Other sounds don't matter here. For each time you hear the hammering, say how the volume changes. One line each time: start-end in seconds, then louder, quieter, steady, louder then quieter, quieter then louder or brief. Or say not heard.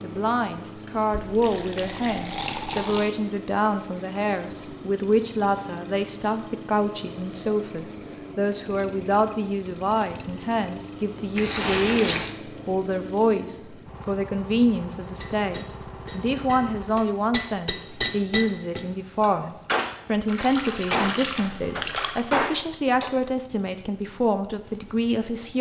15.0-23.2 louder.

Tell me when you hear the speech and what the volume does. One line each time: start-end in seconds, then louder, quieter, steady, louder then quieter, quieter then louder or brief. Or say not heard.
0.0-25.5 steady.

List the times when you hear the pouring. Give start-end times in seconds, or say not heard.
1.1-3.1, 11.3-12.3, 20.2-22.2.